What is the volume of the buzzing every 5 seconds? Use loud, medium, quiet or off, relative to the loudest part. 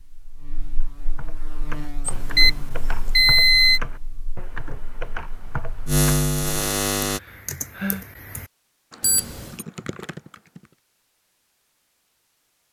quiet, loud, off.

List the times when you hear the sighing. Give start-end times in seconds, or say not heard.
7.0-8.1.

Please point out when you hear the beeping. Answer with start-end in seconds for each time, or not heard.
2.0-3.8, 9.0-9.7.